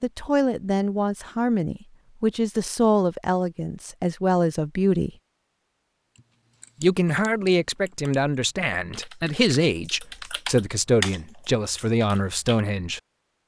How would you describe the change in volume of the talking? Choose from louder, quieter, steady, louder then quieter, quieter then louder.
steady.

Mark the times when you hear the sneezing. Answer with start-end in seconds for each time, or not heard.
not heard.